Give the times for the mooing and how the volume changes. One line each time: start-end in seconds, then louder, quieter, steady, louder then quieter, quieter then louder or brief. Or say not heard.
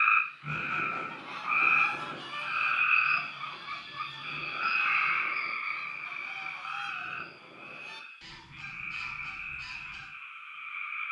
not heard.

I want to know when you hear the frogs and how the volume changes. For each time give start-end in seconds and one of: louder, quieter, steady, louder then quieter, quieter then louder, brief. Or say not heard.
0.0-11.0 quieter.